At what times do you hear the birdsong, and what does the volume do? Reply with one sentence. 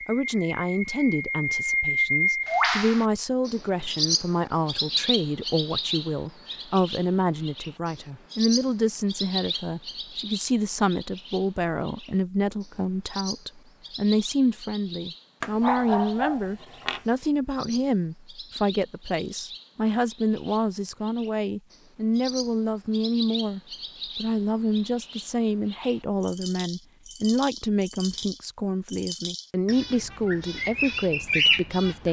You can hear the birdsong from 0.0 to 32.0 s, getting quieter then louder.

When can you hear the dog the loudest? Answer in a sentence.
The loudest moment of the dog is at 16 seconds.